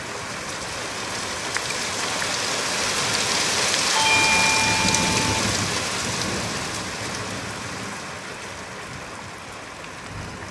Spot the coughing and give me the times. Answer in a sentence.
You can't hear the coughing here.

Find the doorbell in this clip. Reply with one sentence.
The doorbell can be heard from 4.0 to 5.2 s.